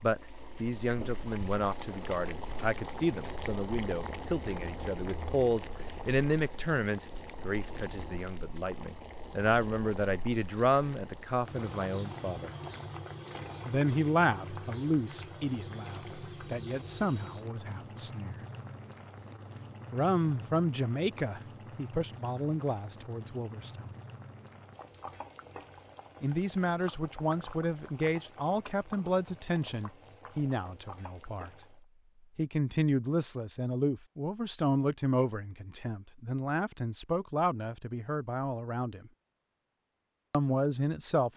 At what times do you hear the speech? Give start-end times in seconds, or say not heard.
0.0-12.5, 13.7-18.4, 19.9-23.9, 26.2-31.5, 32.4-39.1, 40.3-41.3.